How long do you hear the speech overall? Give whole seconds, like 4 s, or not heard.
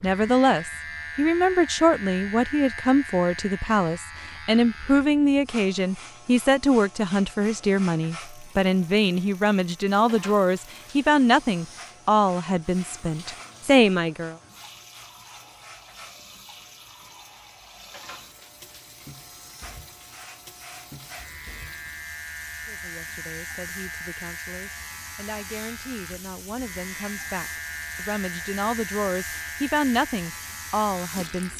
23 s.